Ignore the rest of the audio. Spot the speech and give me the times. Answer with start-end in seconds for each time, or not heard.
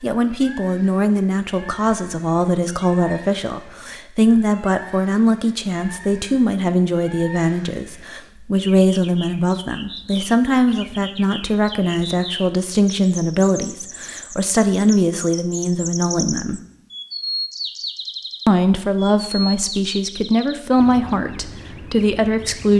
0.0-16.6, 18.4-22.7.